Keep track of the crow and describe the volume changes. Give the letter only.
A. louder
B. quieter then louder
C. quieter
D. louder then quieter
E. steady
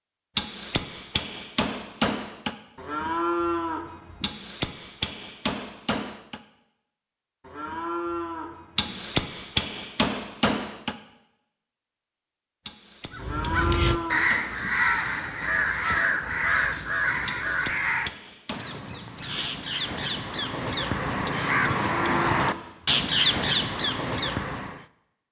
B.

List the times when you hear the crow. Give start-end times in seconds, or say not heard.
13.1-24.9.